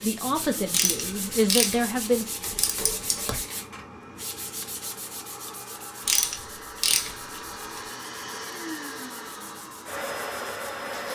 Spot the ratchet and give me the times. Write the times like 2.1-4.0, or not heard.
0.7-3.4, 6.0-7.8.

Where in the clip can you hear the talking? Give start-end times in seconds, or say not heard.
0.0-2.2.